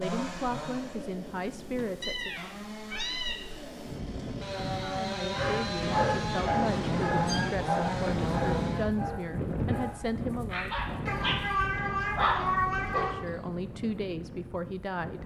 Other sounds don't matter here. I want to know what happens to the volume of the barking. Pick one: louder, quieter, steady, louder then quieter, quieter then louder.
quieter then louder.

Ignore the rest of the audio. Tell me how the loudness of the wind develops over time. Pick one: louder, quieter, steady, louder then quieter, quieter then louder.
louder then quieter.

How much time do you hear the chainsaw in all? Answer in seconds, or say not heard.
9 s.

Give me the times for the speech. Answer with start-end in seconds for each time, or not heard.
0.0-2.5, 4.8-10.8, 12.9-15.2.